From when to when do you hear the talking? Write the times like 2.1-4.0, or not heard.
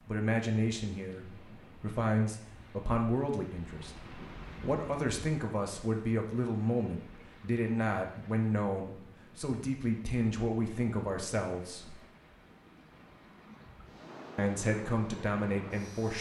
0.1-12.0, 14.3-16.1.